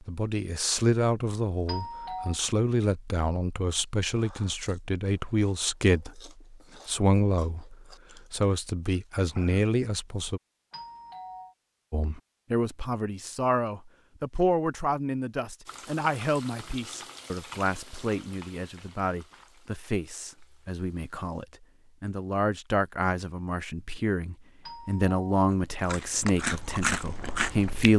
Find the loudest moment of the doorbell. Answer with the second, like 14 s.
2 s.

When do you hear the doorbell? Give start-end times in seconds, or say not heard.
1.6-2.4, 10.7-11.6, 24.6-25.3.